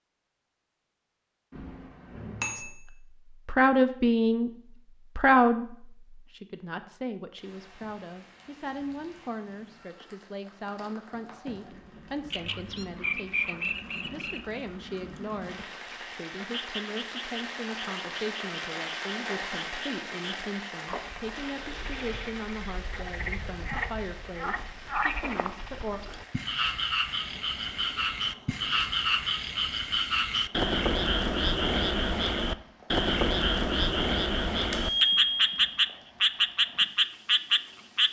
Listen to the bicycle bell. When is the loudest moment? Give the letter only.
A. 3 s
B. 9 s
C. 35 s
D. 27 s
C.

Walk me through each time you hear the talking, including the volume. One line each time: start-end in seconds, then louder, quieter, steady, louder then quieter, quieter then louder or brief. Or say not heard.
2.5-4.5 brief
5.2-26.0 steady.